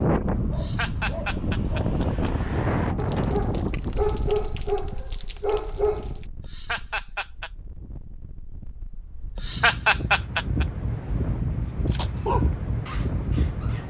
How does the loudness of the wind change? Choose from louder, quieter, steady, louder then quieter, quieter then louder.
quieter then louder.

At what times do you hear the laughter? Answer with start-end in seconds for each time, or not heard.
0.5-2.3, 6.4-7.5, 9.3-10.7.